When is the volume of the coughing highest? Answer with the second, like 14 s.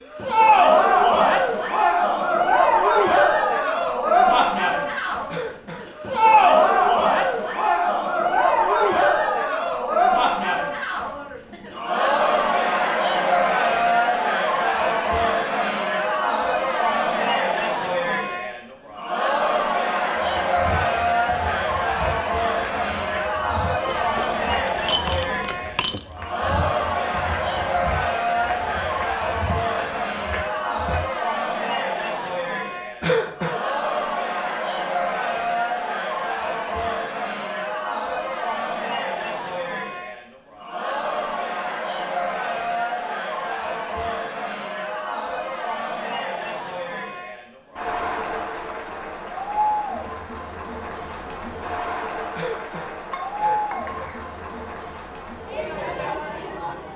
33 s.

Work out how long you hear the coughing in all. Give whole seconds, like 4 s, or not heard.
3 s.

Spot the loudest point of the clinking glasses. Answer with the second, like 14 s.
25 s.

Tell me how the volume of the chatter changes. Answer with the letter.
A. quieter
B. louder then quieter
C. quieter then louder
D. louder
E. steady
A.